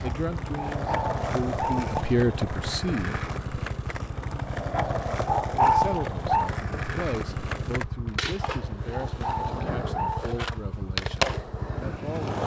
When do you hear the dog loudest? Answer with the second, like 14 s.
6 s.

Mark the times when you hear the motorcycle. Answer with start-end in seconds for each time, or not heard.
0.0-12.4.